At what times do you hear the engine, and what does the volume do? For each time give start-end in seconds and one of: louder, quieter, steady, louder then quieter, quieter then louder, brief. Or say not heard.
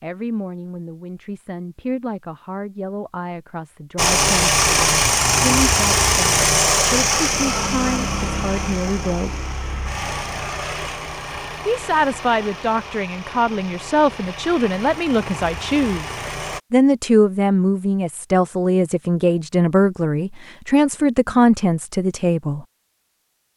4.0-16.6 quieter.